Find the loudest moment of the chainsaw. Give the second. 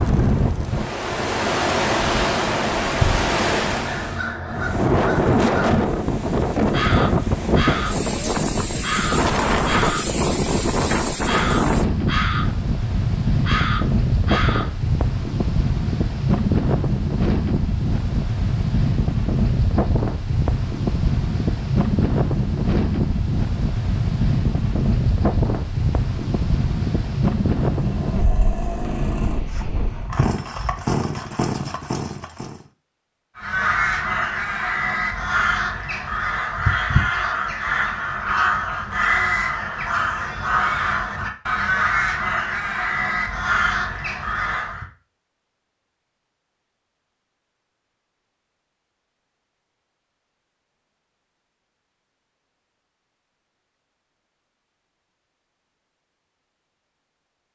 31 s.